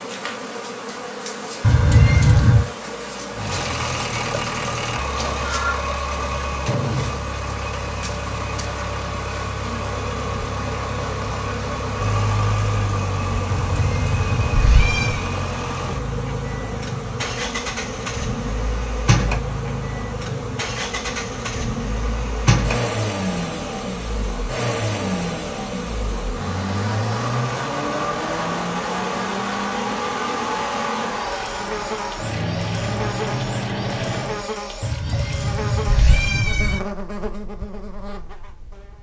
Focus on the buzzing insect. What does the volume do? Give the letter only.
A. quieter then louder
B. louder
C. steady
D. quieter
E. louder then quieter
C.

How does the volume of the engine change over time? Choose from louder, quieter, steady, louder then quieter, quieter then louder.
steady.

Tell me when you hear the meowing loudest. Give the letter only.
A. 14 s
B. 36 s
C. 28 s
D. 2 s
D.